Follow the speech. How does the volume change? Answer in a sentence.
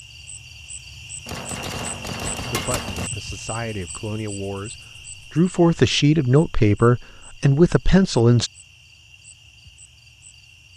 The volume of the speech goes up.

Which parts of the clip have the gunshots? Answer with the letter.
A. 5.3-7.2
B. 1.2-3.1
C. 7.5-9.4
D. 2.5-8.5
B.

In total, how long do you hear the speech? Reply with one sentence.
You can hear the speech for 6 seconds altogether.